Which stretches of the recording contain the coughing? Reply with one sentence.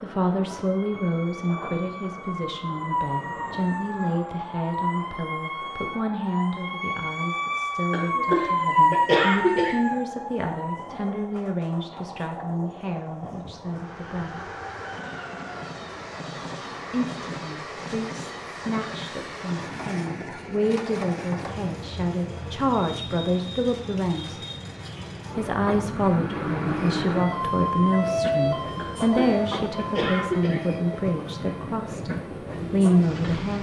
You can hear the coughing from 7.9 to 9.8 s and from 28.8 to 30.6 s.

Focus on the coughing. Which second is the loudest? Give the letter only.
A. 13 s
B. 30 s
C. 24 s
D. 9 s
D.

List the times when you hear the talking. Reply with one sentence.
The talking can be heard from 0.0 to 14.4 s, from 16.9 to 24.4 s and from 25.4 to 33.5 s.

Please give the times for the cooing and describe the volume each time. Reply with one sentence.
You can't hear the cooing here.